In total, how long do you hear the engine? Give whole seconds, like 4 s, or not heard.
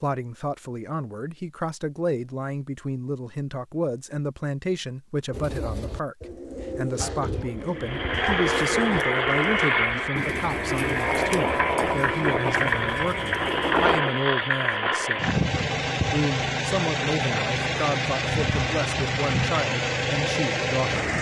14 s.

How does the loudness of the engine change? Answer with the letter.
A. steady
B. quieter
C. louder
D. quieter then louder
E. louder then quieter
A.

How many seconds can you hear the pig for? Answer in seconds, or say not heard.
not heard.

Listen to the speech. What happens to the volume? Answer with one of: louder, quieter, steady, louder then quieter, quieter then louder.
steady.